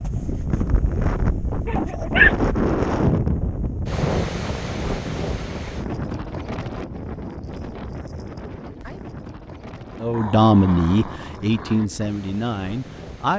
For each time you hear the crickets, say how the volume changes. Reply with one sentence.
You can't hear the crickets here.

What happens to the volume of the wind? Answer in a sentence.
The volume of the wind goes down.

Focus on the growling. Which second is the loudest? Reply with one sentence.
The loudest moment of the growling is at 2 seconds.